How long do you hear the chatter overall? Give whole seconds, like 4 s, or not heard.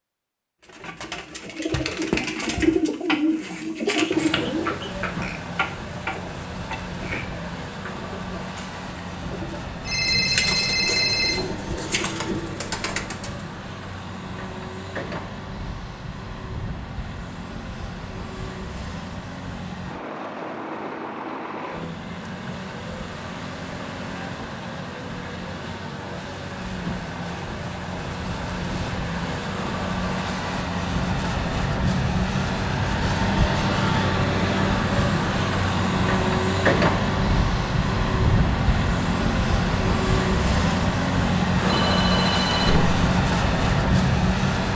not heard.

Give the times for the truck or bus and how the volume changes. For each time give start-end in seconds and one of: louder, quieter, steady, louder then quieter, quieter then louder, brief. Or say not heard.
4.1-44.7 louder.